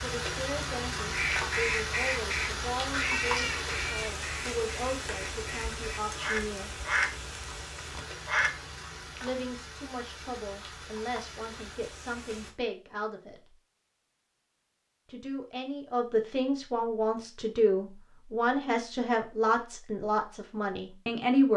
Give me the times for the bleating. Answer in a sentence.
You can't hear the bleating here.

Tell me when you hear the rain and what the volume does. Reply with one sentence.
The rain can be heard from 0.0 to 12.6 s, getting quieter.